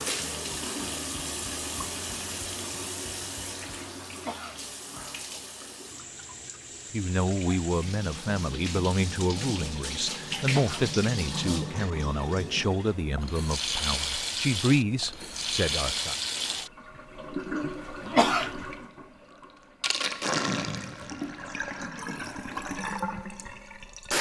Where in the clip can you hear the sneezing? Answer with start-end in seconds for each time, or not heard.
4.2-4.6, 10.4-10.9, 18.1-18.5.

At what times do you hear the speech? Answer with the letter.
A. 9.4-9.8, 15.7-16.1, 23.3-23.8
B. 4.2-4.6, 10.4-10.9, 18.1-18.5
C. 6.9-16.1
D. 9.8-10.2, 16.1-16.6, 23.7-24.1
C.